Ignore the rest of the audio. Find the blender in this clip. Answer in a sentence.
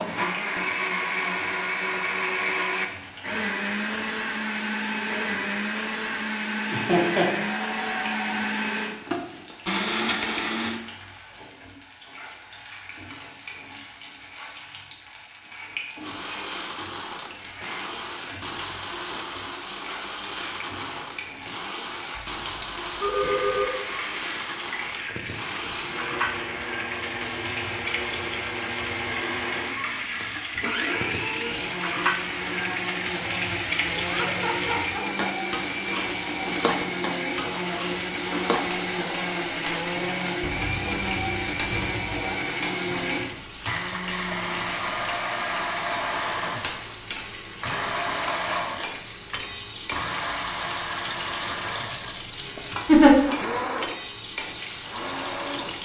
The blender can be heard from 0.0 to 10.8 s and from 16.0 to 55.7 s.